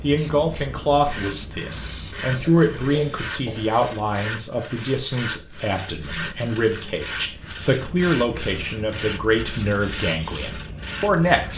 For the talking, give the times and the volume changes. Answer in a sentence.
The talking can be heard from 0.0 to 11.5 s, at a steady volume.